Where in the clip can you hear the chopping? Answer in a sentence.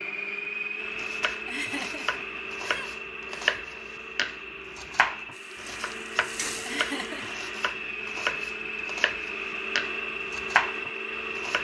The chopping can be heard from 0.9 to 11.5 s.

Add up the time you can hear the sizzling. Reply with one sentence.
You can hear the sizzling for 2 seconds altogether.